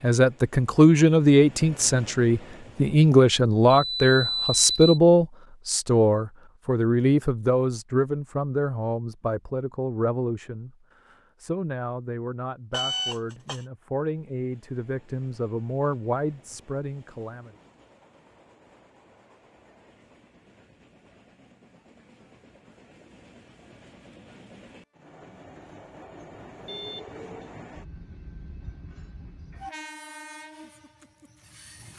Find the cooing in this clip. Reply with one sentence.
You can't hear the cooing here.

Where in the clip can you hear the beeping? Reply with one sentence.
You can hear the beeping from 3.7 to 5.0 s, from 12.7 to 13.6 s and from 26.6 to 27.4 s.